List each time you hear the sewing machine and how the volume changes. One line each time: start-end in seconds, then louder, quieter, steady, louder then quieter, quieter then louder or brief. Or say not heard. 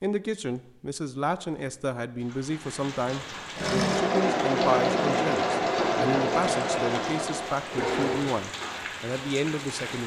3.5-8.2 quieter.